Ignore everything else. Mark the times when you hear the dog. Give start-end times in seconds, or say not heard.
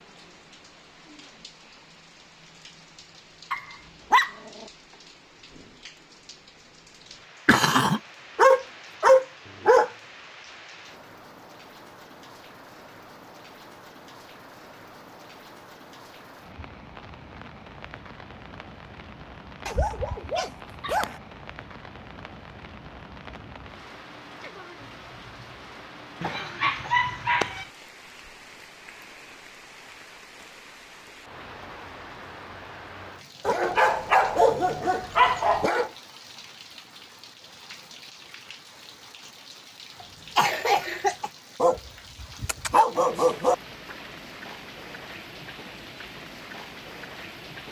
3.5-4.7, 8.3-9.9, 19.6-21.1, 26.2-27.6, 33.5-35.9, 41.6-43.5.